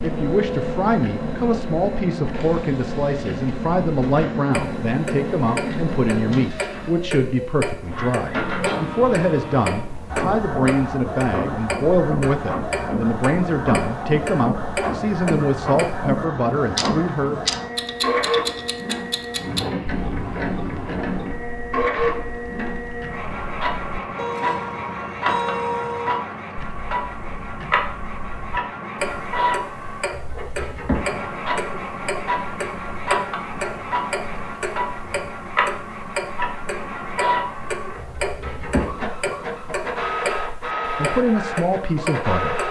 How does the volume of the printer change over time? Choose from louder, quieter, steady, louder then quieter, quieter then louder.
steady.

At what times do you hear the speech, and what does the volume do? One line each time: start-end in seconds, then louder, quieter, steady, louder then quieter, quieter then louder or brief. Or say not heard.
0.0-17.4 steady
41.0-42.5 brief.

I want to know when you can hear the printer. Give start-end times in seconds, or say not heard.
0.0-42.6.